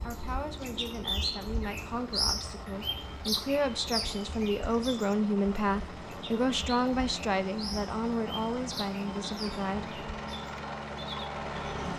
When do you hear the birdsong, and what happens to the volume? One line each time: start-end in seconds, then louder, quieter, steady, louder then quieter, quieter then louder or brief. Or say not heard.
0.0-11.9 quieter.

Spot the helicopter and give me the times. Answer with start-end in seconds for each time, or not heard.
0.0-11.9.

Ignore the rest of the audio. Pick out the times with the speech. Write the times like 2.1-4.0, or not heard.
0.0-10.1.